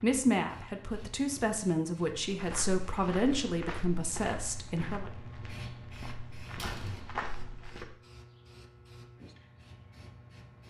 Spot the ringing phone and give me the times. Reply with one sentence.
You can't hear the ringing phone here.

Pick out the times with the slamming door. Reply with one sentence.
You can hear the slamming door from 6.5 to 7.2 s.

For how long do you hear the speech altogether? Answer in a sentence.
You can hear the speech for 5 seconds altogether.